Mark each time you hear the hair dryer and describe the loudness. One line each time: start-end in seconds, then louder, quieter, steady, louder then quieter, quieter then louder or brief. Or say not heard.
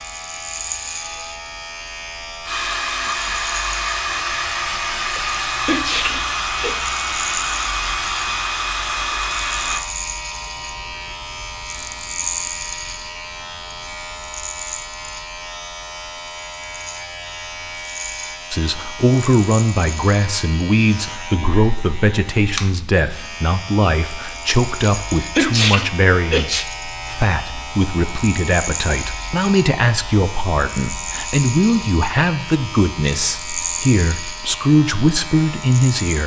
2.4-9.8 steady.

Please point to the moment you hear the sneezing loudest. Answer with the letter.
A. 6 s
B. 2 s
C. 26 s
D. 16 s
C.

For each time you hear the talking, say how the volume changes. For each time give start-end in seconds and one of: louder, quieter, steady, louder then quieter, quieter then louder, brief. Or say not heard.
18.5-36.2 steady.